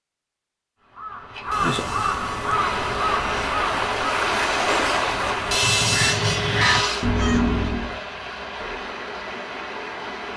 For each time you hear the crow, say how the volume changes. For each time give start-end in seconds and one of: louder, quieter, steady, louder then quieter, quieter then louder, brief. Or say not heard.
0.8-8.0 quieter then louder.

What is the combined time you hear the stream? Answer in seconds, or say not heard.
8 s.